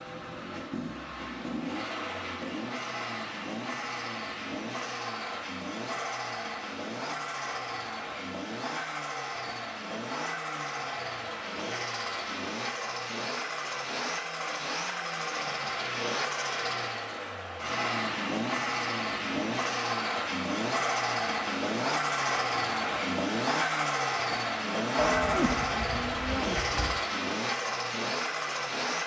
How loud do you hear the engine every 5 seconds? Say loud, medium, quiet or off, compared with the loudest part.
medium, medium, medium, loud, loud, loud.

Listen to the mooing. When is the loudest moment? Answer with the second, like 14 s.
25 s.